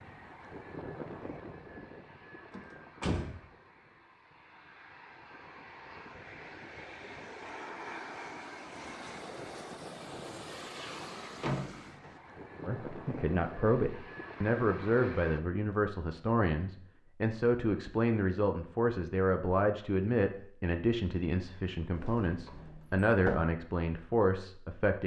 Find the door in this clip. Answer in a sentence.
The door can be heard from 2.5 to 3.4 s, from 11.4 to 12.2 s and from 21.9 to 23.4 s.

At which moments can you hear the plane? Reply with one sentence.
You can hear the plane from 0.0 to 15.4 s.